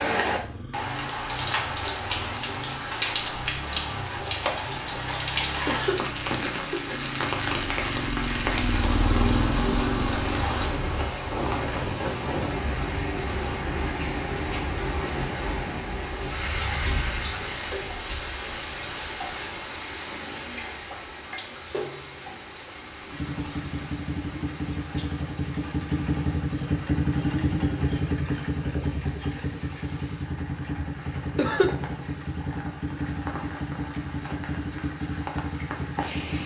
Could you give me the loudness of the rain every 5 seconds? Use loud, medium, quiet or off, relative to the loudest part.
loud, loud, loud, loud, medium, quiet, quiet, medium.